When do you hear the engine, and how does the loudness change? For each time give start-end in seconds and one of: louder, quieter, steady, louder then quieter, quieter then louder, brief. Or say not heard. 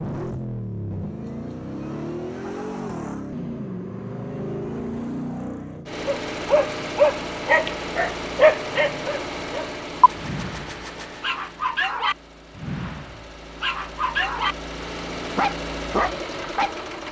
0.0-17.0 quieter then louder.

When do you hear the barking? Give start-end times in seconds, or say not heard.
6.0-16.7.